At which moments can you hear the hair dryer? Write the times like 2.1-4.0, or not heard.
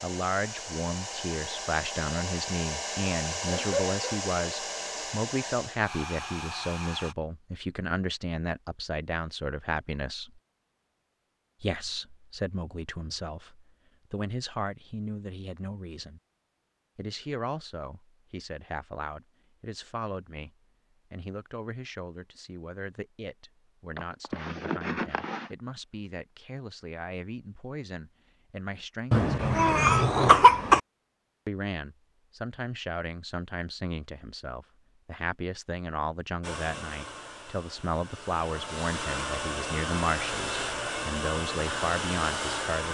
0.0-7.2, 36.4-42.8.